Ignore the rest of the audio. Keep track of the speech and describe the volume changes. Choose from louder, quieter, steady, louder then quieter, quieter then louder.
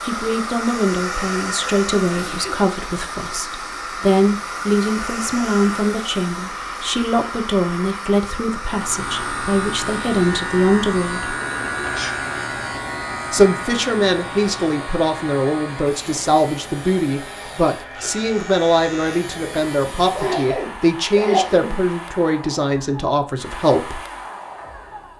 steady.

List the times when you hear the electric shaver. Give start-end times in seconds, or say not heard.
8.7-20.4.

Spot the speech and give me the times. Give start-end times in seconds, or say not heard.
0.0-11.3, 13.3-24.0.